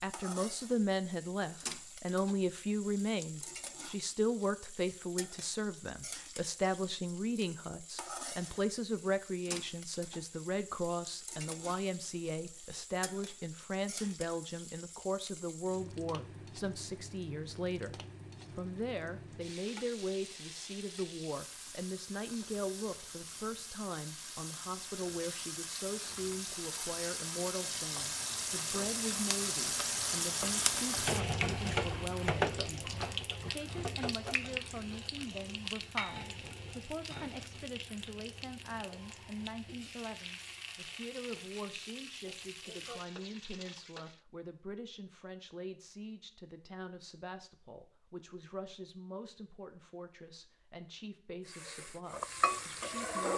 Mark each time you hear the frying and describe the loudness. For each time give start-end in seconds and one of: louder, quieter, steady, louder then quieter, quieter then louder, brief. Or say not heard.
0.0-44.2 louder then quieter
51.5-53.3 brief.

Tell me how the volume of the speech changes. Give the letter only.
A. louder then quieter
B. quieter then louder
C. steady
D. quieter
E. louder
D.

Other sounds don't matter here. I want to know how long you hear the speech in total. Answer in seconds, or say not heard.
53 s.